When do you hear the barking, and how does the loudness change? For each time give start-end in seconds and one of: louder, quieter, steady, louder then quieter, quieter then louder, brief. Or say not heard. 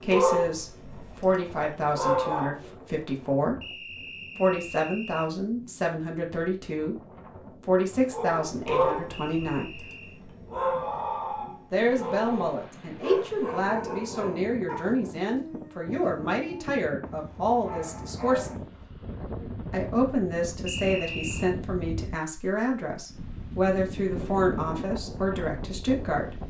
0.0-2.5 brief
8.1-18.9 quieter.